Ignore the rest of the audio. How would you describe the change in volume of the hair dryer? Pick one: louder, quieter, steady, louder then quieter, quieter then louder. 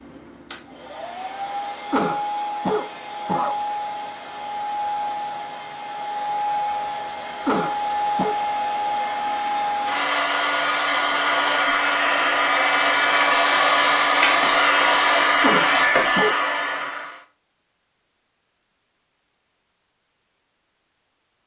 louder.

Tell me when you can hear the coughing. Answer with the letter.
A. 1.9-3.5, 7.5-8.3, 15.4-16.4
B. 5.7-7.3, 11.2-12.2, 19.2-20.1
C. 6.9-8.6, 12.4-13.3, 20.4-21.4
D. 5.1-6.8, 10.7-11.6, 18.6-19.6
A.